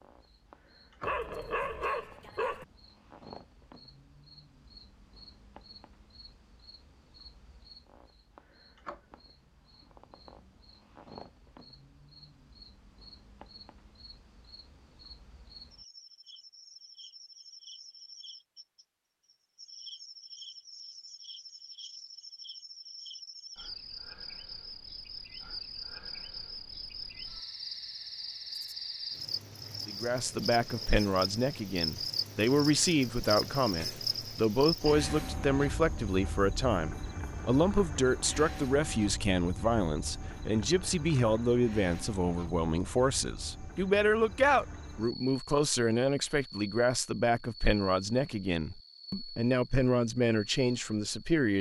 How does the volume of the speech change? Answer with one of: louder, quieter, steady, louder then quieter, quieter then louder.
steady.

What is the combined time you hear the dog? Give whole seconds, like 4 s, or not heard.
2 s.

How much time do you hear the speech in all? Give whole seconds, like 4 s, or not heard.
22 s.